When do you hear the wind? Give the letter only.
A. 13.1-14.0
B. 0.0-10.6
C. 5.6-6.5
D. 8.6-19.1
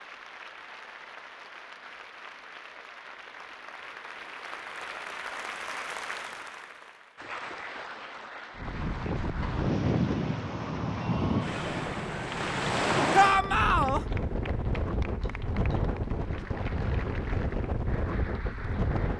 D.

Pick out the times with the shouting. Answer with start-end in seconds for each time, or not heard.
13.1-14.0.